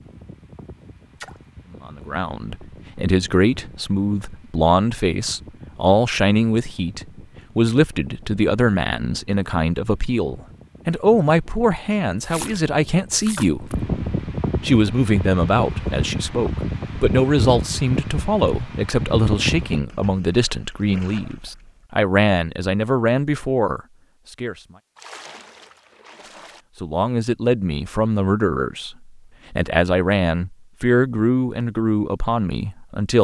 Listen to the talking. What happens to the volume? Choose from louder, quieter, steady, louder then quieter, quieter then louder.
steady.